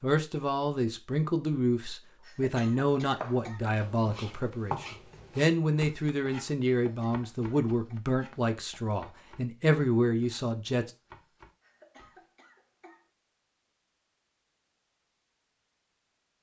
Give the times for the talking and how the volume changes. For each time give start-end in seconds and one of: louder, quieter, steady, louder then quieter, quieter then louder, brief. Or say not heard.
0.0-10.9 steady.